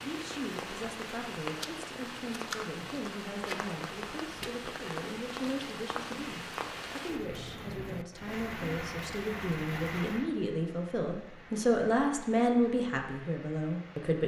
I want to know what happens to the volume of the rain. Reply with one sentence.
The loudness of the rain goes down.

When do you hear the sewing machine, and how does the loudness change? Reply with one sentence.
The sewing machine can't be heard in this clip.